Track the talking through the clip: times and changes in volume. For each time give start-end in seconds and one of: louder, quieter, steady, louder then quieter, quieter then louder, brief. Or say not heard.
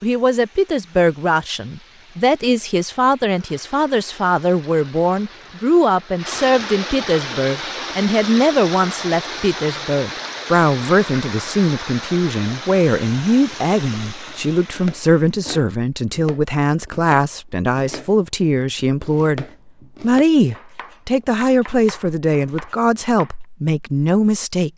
0.0-24.7 steady.